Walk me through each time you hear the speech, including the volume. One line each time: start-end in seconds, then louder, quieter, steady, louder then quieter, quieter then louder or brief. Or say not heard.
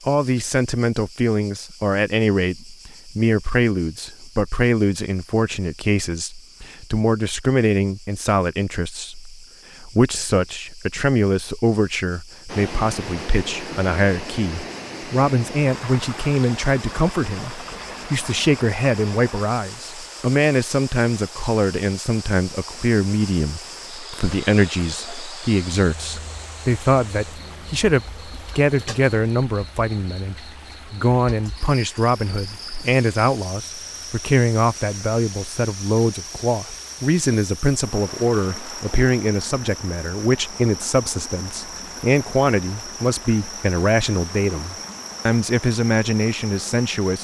0.0-47.2 steady.